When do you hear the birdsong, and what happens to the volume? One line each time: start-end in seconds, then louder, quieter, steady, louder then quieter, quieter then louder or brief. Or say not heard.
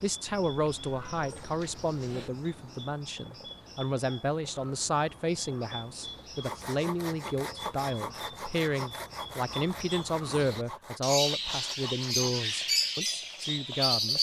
0.0-14.1 louder.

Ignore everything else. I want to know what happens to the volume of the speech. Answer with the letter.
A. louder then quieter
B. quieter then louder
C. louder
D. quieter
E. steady
E.